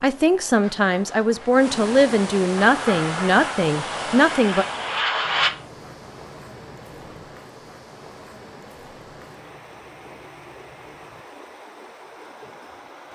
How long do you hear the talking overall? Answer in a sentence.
You can hear the talking for 5 seconds altogether.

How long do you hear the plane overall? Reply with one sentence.
You can hear the plane for 3 seconds altogether.